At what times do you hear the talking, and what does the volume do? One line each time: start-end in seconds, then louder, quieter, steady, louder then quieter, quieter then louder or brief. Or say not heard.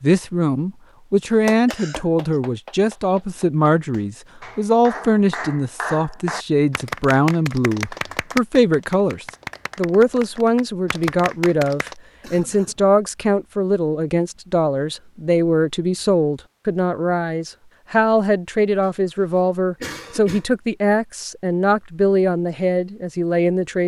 0.0-23.8 steady.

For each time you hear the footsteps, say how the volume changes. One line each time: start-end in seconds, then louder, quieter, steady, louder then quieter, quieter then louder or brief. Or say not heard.
not heard.